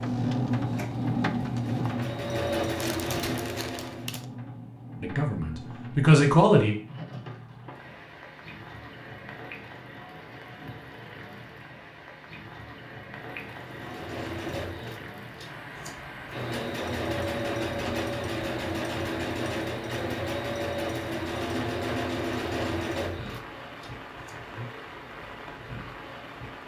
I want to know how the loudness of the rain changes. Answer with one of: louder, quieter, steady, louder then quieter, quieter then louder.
quieter.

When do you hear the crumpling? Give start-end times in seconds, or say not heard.
2.8-4.2.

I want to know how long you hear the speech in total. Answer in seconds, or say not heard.
2 s.